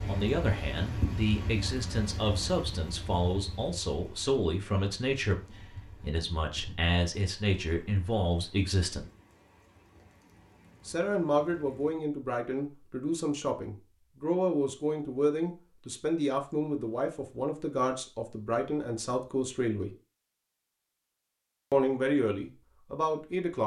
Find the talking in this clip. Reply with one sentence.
You can hear the talking from 0.1 to 9.1 s, from 10.8 to 19.9 s and from 21.7 to 23.6 s.